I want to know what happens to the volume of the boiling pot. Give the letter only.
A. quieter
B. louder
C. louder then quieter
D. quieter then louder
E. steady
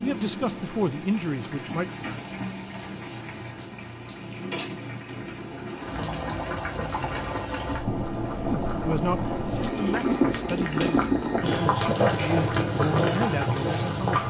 B.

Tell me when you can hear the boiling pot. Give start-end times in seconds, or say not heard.
0.0-14.2.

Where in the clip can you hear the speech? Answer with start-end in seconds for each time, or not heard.
0.0-1.9, 8.7-14.2.